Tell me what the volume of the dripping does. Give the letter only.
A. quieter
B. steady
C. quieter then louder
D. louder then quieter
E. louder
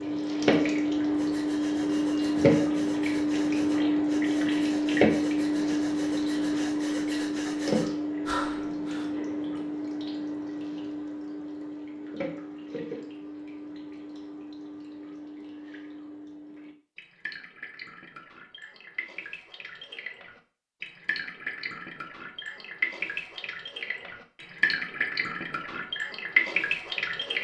C.